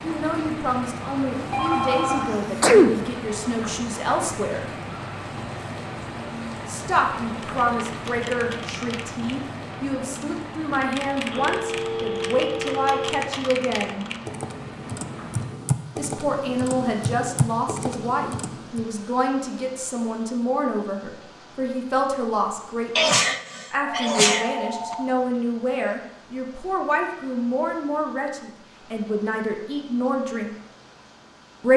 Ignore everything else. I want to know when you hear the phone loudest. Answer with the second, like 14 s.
2 s.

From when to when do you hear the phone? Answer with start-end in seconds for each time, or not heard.
1.3-2.2, 11.3-13.2, 23.8-25.1.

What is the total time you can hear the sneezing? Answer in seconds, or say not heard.
3 s.